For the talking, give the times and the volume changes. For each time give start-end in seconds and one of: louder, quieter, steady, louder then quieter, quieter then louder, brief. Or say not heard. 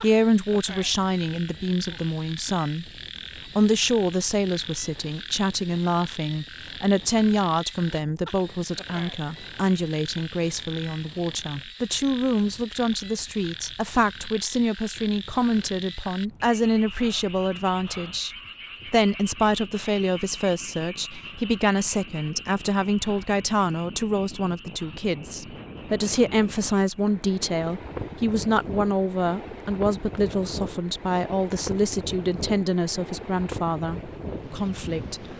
0.0-2.9 brief
3.5-35.2 steady.